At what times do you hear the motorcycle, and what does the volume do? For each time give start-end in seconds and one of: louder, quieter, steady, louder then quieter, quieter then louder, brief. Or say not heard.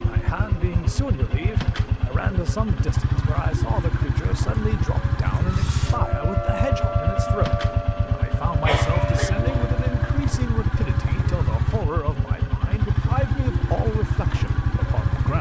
0.0-15.3 steady.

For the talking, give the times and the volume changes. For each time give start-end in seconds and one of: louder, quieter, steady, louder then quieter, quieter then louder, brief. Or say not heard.
0.0-15.3 steady.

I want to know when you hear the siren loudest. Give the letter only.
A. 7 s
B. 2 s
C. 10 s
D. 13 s
A.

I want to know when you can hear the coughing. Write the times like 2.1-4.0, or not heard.
8.7-9.7.